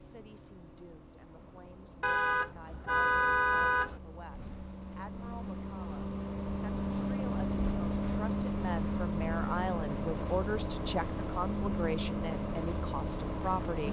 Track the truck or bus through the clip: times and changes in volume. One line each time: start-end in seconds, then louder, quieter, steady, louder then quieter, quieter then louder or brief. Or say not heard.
0.0-13.8 louder.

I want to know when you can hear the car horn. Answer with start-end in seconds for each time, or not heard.
2.0-4.0.